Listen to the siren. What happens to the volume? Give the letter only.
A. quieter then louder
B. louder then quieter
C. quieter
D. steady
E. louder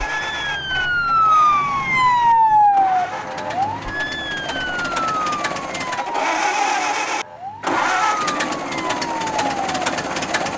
C.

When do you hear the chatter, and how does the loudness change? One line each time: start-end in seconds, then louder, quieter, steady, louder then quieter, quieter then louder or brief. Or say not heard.
not heard.